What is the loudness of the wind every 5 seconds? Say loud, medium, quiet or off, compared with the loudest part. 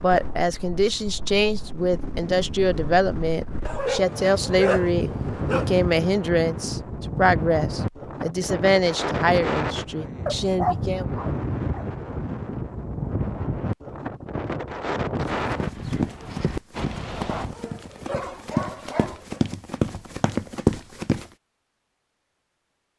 medium, loud, loud, loud, off.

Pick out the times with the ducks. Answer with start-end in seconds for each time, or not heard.
not heard.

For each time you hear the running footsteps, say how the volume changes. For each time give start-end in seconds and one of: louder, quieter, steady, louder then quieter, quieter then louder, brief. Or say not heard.
15.3-21.2 louder.